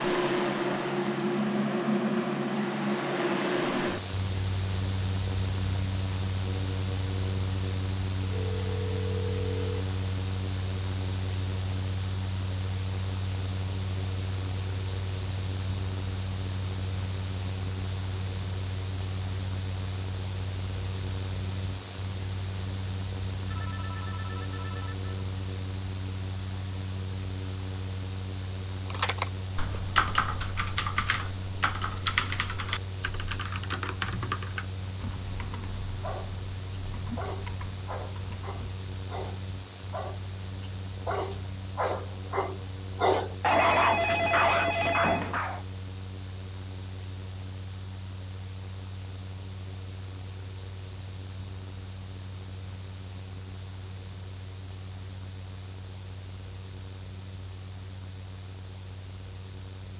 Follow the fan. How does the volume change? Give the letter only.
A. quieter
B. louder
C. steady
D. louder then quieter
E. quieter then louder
A.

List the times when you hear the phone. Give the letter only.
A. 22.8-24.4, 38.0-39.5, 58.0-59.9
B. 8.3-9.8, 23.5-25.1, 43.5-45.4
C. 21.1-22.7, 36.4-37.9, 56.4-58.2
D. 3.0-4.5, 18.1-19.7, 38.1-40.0
B.